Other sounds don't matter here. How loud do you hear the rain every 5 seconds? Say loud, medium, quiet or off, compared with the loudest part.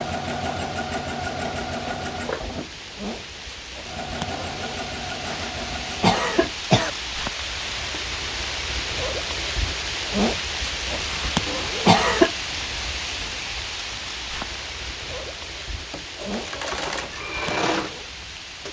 medium, loud, loud, medium.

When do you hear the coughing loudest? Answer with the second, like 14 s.
12 s.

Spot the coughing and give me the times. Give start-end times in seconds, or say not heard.
5.2-6.9, 11.1-12.3.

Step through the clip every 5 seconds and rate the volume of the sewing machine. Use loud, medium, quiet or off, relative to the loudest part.
loud, medium, off, loud.